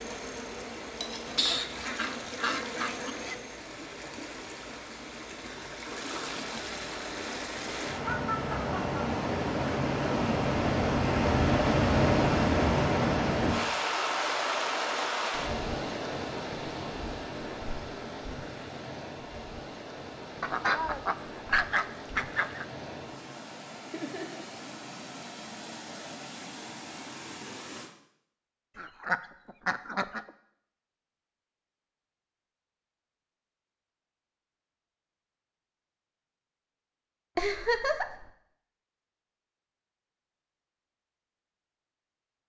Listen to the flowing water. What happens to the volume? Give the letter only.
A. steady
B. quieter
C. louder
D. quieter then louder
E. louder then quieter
E.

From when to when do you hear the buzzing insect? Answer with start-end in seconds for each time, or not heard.
0.0-3.6.